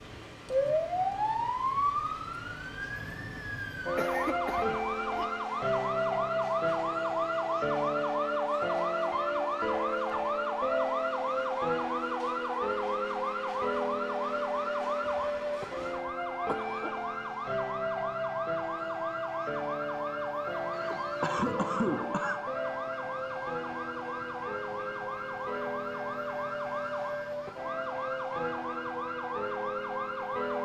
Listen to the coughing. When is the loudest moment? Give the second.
22 s.